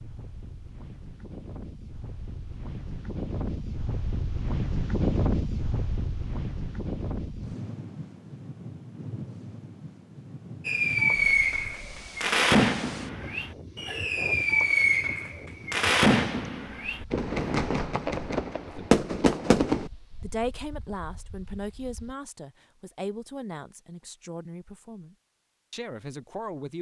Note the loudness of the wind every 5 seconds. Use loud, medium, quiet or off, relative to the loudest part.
loud, loud, medium, quiet, quiet, off.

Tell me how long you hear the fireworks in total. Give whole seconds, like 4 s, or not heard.
9 s.